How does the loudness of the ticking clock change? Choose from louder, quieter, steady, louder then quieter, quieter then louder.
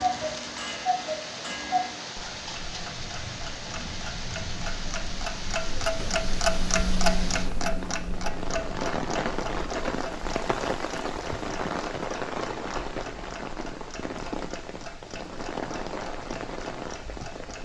quieter.